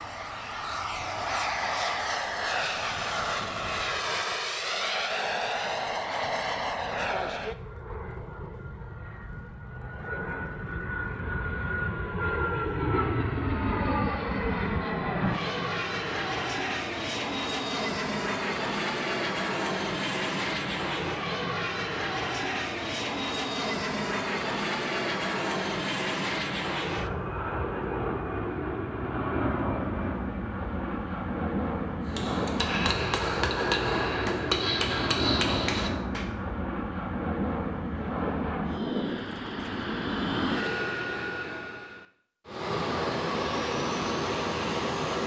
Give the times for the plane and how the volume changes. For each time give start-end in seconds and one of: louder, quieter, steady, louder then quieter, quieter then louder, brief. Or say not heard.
0.0-45.2 steady.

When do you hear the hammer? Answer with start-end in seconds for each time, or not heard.
32.0-36.3.